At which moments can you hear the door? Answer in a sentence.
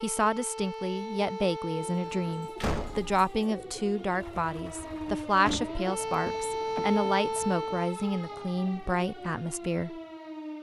You can hear the door from 2.5 to 3.1 s and from 5.4 to 7.0 s.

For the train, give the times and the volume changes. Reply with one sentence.
You can't hear the train here.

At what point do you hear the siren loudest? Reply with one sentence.
The loudest moment of the siren is at 7 seconds.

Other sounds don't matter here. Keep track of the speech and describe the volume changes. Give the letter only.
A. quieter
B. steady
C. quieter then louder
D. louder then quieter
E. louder
B.